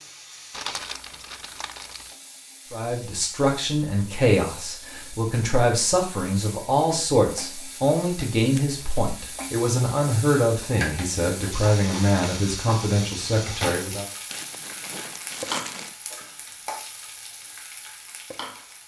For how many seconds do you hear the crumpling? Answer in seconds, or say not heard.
4 s.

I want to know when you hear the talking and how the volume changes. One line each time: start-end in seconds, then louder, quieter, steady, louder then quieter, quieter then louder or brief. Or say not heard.
2.7-14.1 steady.